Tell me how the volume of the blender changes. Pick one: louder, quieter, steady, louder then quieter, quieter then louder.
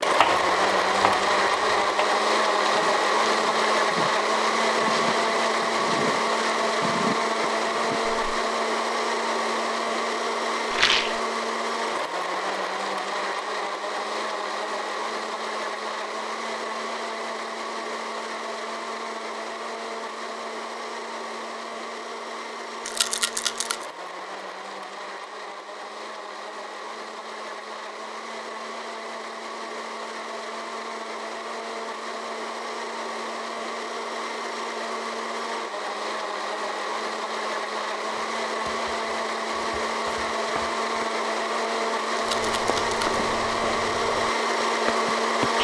quieter then louder.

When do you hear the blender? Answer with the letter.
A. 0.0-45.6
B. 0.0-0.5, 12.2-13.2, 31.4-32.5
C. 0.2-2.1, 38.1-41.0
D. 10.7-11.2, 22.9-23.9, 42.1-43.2
A.